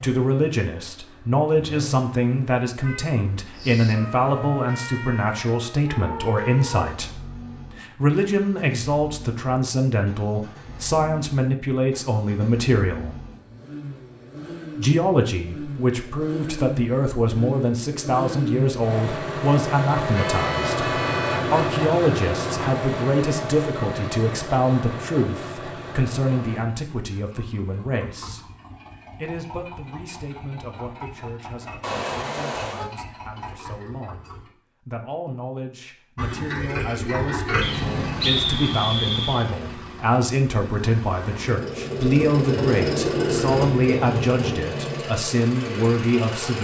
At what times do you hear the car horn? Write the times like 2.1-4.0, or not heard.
2.8-4.0, 20.1-21.6, 31.8-32.9.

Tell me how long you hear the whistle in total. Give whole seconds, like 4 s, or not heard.
2 s.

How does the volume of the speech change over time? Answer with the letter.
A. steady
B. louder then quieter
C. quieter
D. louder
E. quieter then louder
E.